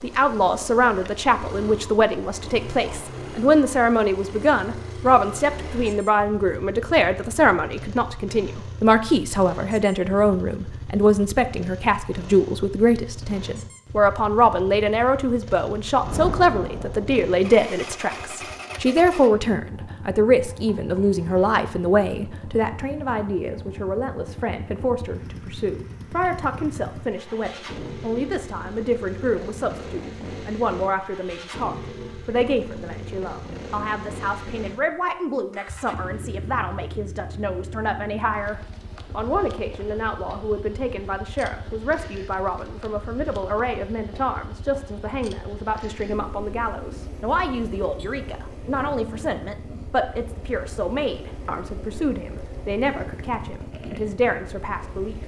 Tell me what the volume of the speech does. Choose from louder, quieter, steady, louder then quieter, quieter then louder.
quieter.